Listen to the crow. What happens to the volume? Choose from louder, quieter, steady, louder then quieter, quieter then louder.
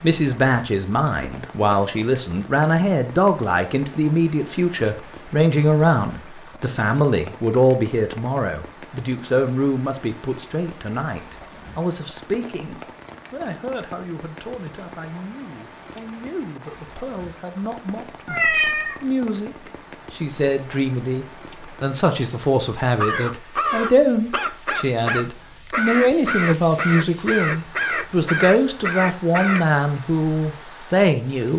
steady.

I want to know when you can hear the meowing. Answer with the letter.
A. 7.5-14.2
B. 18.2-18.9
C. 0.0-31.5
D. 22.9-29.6
B.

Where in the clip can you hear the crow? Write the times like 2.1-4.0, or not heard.
22.9-29.6.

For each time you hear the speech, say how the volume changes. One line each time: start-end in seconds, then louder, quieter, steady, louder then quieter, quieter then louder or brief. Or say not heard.
0.0-31.5 quieter then louder.